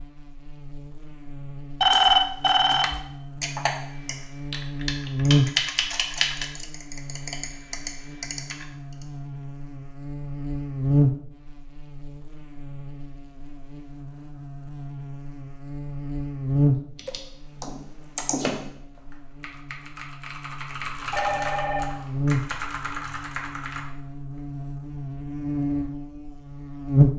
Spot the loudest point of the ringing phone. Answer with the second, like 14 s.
2 s.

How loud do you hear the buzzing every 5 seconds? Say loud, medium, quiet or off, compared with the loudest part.
quiet, medium, medium, medium, medium, loud.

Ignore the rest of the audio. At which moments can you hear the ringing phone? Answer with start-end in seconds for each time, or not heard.
1.8-3.0, 21.1-22.0.